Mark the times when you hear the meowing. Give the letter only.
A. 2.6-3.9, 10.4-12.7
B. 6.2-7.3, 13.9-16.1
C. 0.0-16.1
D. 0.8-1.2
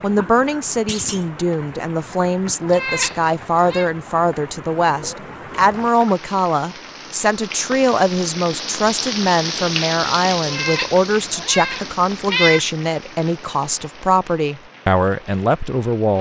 A.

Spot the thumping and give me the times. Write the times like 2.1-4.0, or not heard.
0.8-1.2.